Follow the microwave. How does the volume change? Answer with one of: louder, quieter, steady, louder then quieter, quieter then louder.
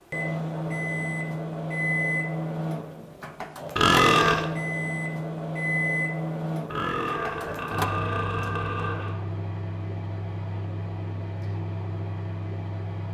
quieter.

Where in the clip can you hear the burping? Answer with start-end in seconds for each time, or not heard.
3.8-4.5, 6.7-9.2.